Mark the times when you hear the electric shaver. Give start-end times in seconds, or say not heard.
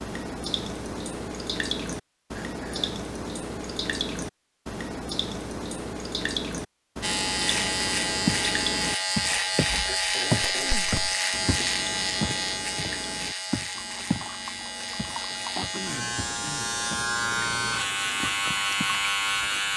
7.0-19.7.